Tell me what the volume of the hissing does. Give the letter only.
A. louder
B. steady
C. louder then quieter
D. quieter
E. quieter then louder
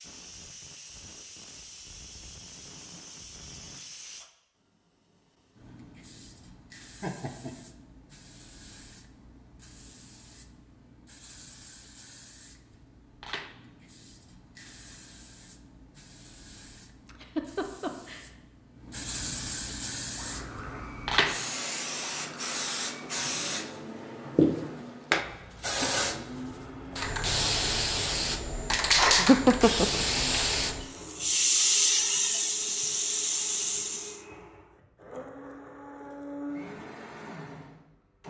A.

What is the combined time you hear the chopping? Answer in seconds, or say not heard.
not heard.